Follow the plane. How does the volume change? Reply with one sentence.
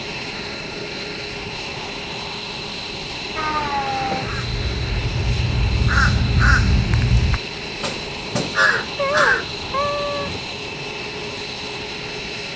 The volume of the plane stays about the same.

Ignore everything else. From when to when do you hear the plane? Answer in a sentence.
The plane can be heard from 0.0 to 12.5 s.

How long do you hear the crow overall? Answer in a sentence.
You can hear the crow for 6 seconds altogether.